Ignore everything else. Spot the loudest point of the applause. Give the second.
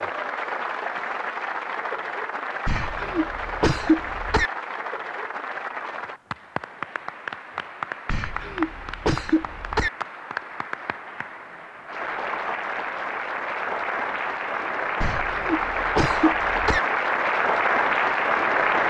18 s.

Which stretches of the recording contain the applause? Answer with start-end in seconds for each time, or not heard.
0.0-18.8.